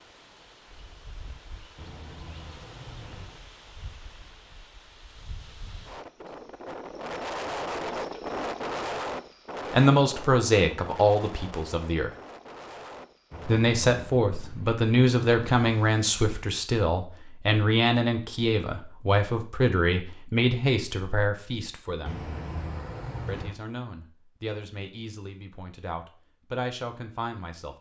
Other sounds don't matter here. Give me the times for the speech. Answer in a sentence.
The speech can be heard from 9.7 to 12.1 s, from 13.4 to 22.2 s and from 23.2 to 27.7 s.